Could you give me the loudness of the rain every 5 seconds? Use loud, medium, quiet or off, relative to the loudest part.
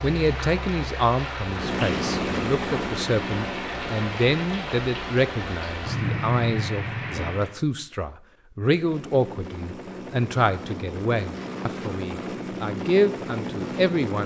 loud, loud, off.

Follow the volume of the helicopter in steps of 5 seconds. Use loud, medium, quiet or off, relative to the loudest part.
loud, medium, loud.